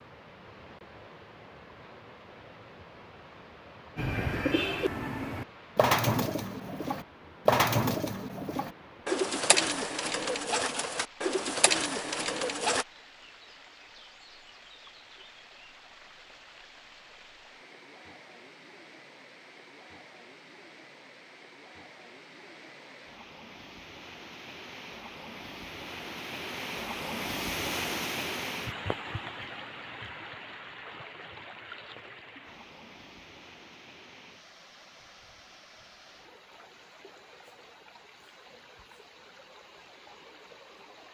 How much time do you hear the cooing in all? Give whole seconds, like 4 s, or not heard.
9 s.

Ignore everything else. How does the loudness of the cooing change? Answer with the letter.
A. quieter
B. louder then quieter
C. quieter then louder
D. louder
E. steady
E.